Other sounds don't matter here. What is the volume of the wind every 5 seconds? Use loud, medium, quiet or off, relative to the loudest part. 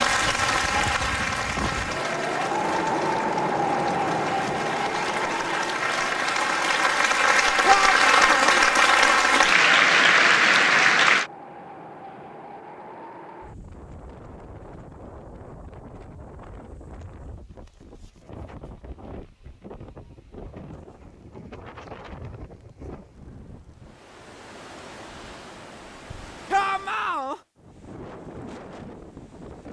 loud, medium, quiet, quiet, quiet, quiet.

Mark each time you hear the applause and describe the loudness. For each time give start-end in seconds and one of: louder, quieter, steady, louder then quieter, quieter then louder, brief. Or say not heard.
0.0-11.3 quieter then louder.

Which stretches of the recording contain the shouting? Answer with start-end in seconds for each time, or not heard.
7.7-8.6, 26.5-27.4.